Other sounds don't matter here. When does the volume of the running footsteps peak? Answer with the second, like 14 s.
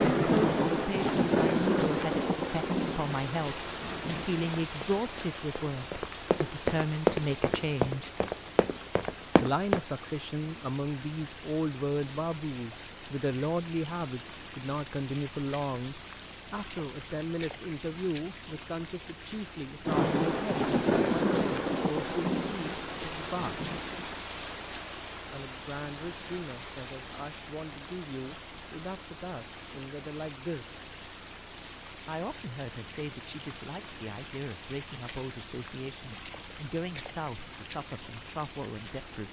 7 s.